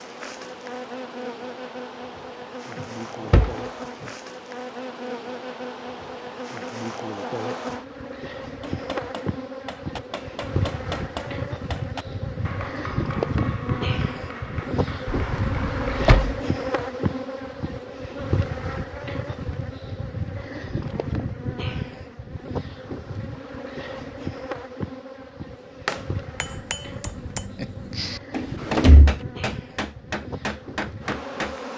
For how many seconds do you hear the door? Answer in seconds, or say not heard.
3 s.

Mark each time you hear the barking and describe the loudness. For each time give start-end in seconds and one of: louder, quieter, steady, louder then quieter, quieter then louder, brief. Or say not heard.
not heard.